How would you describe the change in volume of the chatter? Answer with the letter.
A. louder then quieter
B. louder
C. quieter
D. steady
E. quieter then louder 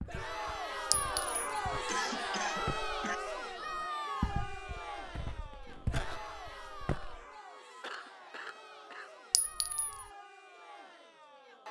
C.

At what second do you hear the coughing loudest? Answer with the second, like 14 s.
2 s.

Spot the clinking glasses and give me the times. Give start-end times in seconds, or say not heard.
0.9-1.4, 9.3-10.1.